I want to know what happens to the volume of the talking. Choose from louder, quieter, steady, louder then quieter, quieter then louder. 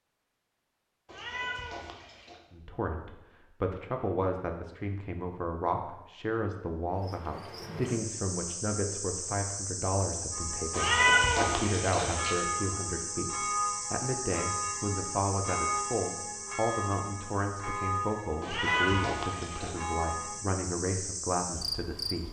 steady.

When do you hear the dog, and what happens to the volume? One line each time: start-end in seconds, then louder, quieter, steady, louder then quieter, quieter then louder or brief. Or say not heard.
not heard.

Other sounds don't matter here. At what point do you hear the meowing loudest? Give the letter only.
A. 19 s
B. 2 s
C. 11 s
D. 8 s
C.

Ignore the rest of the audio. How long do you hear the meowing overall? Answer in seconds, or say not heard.
4 s.